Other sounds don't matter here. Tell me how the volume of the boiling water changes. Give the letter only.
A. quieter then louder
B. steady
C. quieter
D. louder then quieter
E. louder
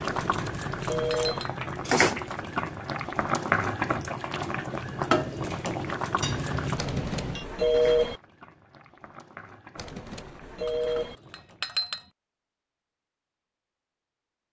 C.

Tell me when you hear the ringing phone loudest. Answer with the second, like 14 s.
8 s.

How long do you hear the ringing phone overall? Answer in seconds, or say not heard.
4 s.